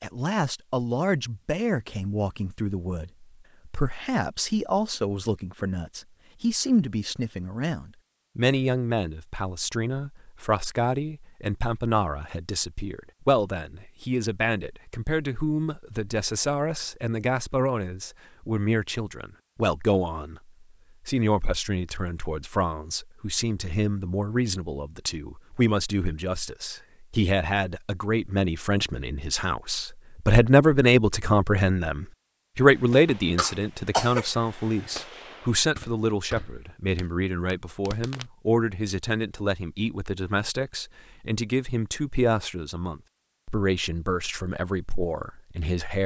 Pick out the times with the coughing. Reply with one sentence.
You can hear the coughing from 33.0 to 34.2 s.